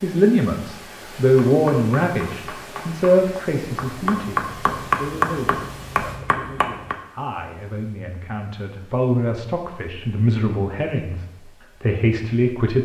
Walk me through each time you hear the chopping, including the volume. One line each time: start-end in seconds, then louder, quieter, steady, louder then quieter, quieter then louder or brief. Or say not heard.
1.4-7.0 louder then quieter.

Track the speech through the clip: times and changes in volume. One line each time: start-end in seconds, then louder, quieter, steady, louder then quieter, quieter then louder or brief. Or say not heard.
0.0-11.2 quieter then louder
11.8-12.8 brief.